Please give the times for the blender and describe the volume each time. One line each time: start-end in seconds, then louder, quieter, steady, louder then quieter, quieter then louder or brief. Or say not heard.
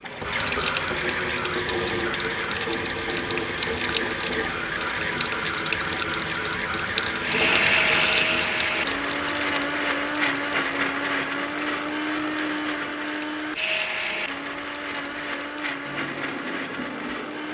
7.2-17.4 quieter.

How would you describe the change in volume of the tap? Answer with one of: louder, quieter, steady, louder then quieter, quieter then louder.
quieter.